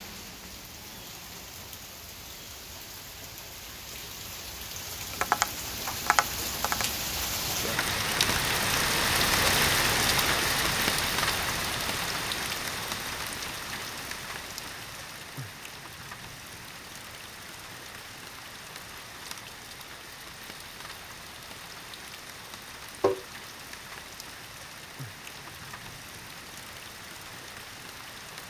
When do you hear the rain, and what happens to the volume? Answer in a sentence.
You can hear the rain from 0.0 to 28.4 s, getting louder then quieter.